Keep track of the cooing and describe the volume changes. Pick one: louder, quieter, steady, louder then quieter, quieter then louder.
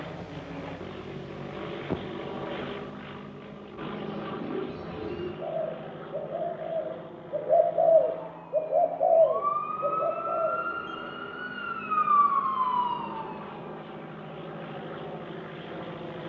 louder then quieter.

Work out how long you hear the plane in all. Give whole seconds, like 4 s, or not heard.
16 s.